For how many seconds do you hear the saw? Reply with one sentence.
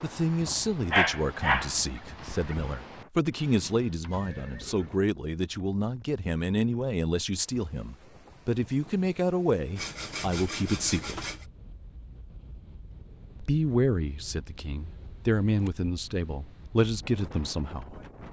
The saw can be heard for 2 seconds in total.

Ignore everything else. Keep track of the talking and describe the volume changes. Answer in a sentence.
The loudness of the talking stays about the same.